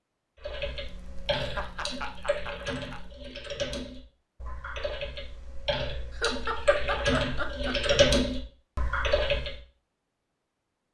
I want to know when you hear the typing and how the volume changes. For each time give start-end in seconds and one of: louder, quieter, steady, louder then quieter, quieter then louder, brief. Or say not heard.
0.4-9.6 louder.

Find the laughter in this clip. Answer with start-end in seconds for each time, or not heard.
0.8-3.1, 6.1-8.2.